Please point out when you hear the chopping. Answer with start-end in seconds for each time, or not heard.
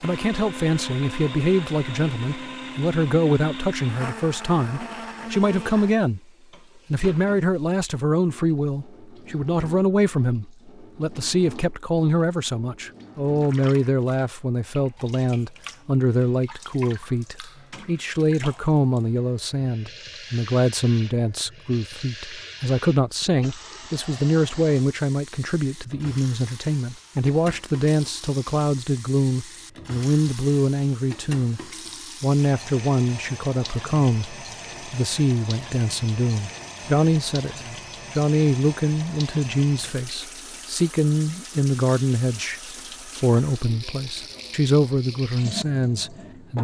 not heard.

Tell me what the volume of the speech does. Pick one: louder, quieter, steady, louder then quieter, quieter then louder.
steady.